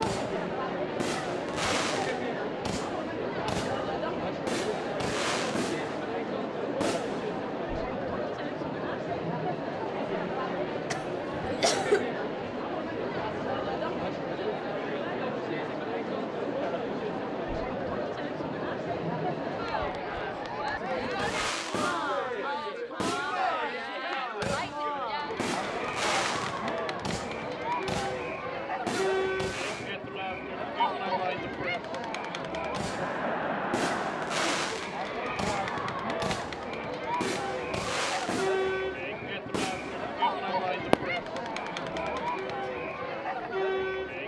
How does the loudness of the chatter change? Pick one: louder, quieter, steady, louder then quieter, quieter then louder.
steady.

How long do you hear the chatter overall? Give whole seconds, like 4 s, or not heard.
44 s.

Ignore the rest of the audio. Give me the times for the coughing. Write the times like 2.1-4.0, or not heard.
10.9-12.1.